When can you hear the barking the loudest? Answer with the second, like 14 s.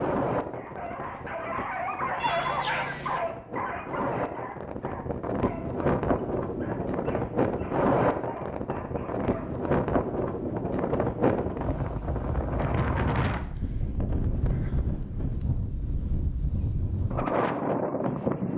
2 s.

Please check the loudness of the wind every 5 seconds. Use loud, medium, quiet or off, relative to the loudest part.
medium, loud, loud, loud.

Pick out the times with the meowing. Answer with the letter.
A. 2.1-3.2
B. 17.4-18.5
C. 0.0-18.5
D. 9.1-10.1
A.